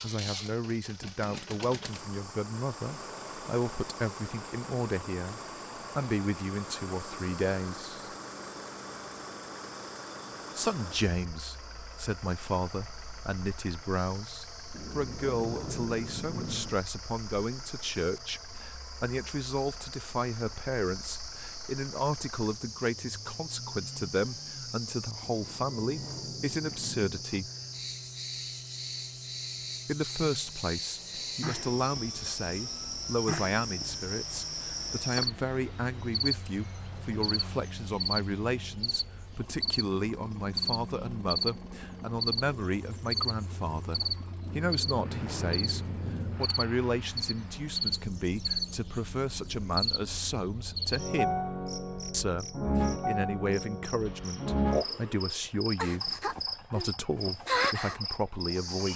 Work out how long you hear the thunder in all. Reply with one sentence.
You can hear the thunder for 6 seconds altogether.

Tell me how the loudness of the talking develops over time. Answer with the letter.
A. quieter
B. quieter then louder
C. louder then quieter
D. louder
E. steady
E.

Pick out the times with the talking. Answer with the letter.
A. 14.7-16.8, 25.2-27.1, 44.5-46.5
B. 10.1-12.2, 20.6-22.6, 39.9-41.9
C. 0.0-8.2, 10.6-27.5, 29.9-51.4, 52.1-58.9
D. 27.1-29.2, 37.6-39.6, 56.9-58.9
C.